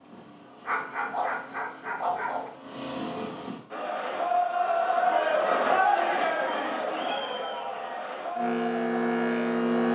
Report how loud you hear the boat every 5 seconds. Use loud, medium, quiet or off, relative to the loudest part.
quiet, loud.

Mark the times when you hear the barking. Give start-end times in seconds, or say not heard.
0.7-2.5, 5.6-7.2.